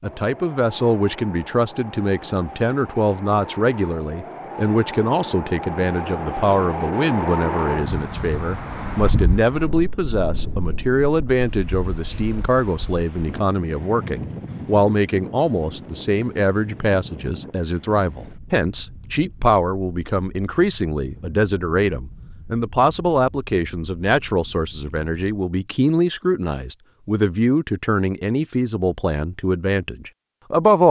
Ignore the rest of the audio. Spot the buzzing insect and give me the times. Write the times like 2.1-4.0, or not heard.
not heard.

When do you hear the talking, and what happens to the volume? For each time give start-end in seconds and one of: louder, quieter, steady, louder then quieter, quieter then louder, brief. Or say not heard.
0.0-30.8 steady.